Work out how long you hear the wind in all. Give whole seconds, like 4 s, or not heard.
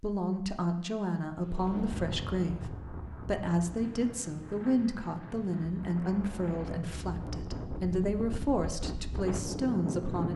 9 s.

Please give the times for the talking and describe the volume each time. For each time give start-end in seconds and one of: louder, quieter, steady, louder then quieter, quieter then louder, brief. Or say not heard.
0.0-10.3 steady.